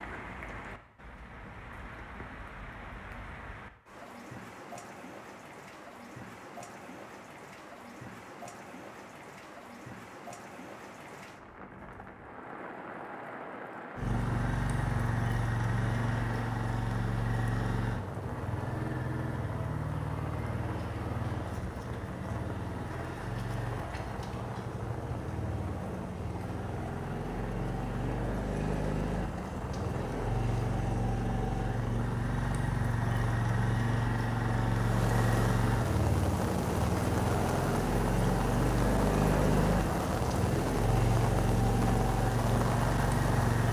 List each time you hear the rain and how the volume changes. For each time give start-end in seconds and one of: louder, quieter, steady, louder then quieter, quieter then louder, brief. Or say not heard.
0.0-43.6 louder.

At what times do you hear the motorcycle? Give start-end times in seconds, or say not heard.
13.9-43.6.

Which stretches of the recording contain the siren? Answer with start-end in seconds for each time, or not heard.
not heard.